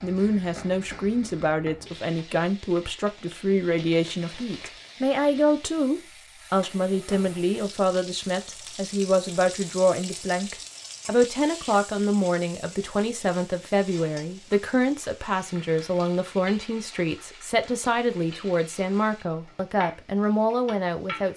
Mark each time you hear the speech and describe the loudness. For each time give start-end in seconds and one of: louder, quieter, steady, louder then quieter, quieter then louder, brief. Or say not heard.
0.0-21.3 steady.